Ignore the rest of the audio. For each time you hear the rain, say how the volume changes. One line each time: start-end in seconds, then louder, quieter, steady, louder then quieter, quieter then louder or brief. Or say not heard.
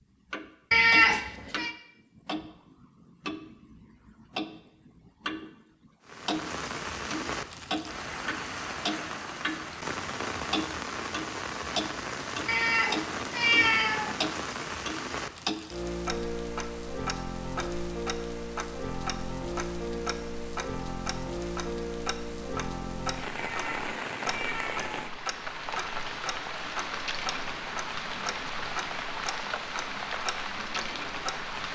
6.0-31.7 steady.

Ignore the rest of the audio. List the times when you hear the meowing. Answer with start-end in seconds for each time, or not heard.
0.7-1.7, 12.4-14.2, 23.4-24.9.